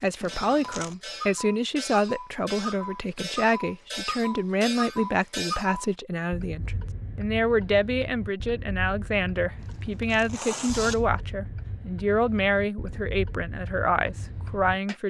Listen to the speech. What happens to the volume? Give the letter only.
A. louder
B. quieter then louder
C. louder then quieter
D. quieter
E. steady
E.